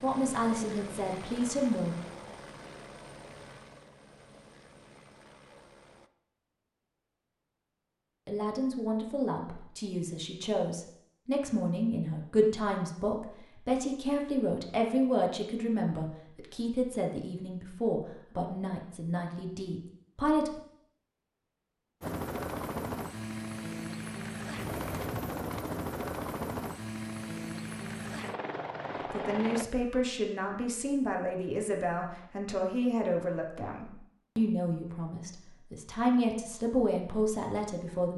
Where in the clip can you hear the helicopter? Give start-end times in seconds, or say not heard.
0.0-6.1, 22.0-29.6.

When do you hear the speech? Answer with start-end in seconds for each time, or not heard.
0.0-1.9, 8.2-20.6, 29.1-38.1.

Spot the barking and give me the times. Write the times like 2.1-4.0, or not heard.
not heard.